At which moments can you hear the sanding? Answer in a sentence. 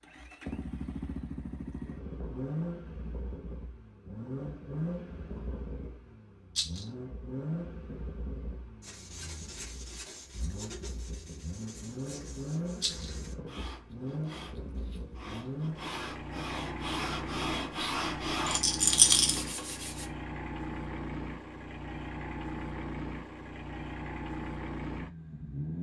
The sanding can be heard from 8.8 to 20.1 s.